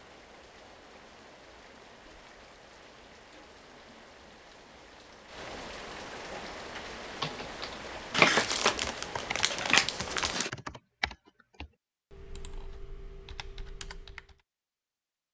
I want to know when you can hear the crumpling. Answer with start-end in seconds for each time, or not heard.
8.1-10.5.